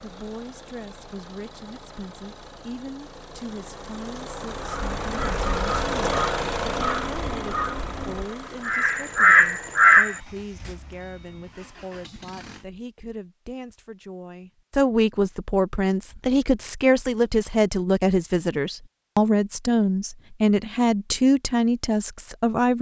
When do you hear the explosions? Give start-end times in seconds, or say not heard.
not heard.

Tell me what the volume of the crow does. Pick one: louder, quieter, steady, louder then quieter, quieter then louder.
louder.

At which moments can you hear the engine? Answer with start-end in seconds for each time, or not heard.
0.0-12.7.